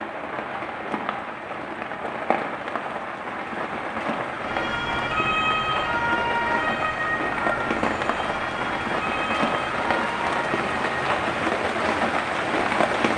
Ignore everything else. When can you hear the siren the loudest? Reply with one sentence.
The loudest moment of the siren is at 6 seconds.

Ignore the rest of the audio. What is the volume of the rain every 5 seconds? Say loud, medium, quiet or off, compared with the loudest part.
medium, loud, loud.